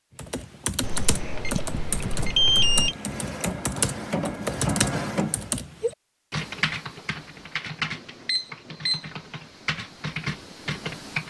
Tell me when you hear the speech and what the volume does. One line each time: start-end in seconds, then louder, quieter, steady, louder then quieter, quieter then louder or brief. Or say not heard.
not heard.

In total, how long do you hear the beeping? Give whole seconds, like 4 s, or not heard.
3 s.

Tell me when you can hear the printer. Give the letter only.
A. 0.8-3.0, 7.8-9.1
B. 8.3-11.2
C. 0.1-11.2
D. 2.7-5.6
D.